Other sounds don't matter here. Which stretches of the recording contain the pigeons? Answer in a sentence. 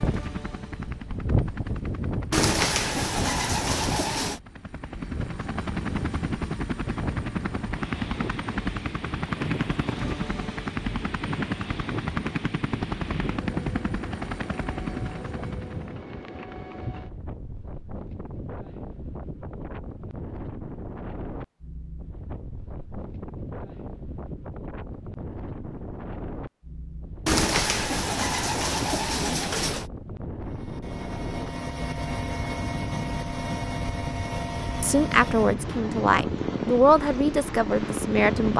The pigeons can be heard from 2.3 to 4.4 s and from 27.2 to 29.9 s.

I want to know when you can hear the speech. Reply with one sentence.
The speech can be heard from 34.8 to 38.5 s.